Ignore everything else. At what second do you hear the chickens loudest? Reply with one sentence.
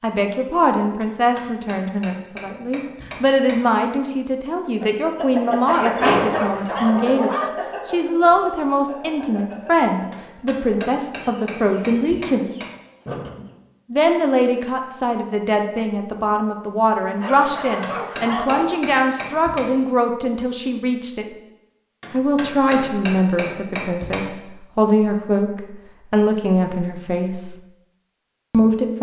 The volume of the chickens peaks at 6 seconds.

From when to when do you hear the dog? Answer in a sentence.
You can hear the dog from 5.7 to 7.5 s and from 17.2 to 18.9 s.